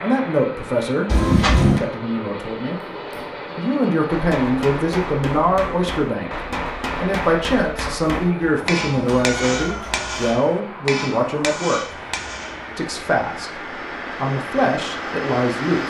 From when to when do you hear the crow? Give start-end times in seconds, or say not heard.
not heard.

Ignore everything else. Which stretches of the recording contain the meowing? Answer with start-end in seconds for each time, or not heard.
1.1-1.8, 8.4-10.3.